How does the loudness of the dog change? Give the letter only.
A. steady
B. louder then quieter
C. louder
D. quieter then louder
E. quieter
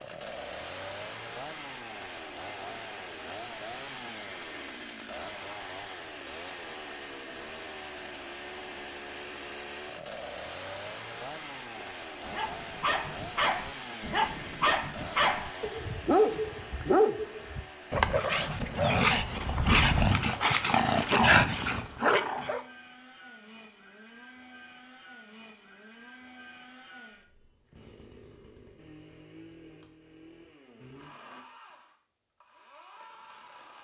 C.